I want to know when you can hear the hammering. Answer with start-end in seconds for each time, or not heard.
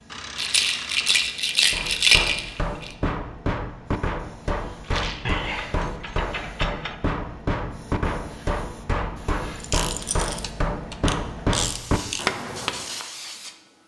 1.7-12.9.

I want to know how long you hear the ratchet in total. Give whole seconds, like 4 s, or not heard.
6 s.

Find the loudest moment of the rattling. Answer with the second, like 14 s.
2 s.